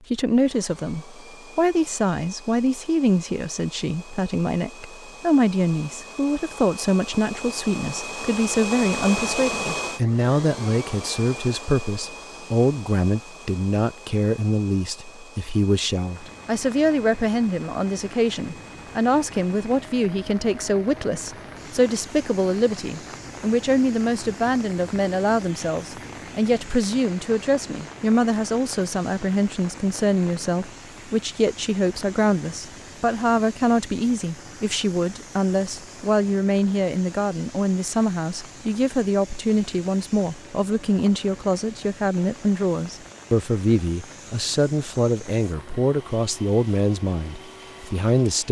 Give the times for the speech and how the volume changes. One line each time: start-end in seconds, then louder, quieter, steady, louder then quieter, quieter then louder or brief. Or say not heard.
0.1-48.4 steady.